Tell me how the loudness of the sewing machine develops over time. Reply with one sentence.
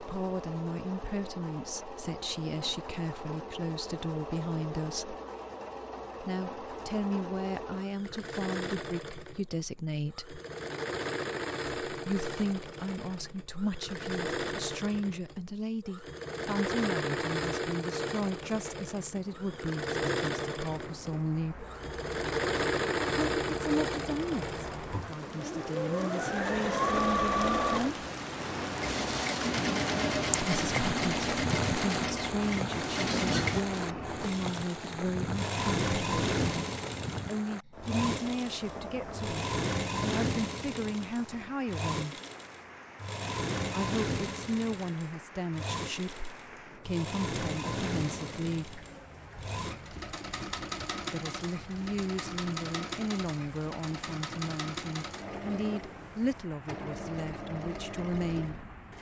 The loudness of the sewing machine goes up, then down.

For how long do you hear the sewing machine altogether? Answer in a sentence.
You can hear the sewing machine for 59 seconds altogether.